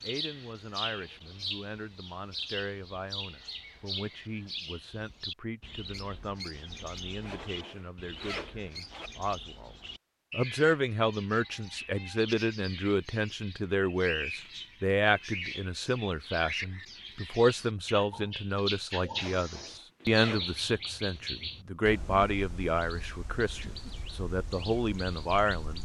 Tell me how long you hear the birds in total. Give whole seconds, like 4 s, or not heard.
26 s.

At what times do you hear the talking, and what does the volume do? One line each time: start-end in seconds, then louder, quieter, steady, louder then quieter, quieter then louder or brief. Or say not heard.
0.0-25.8 louder.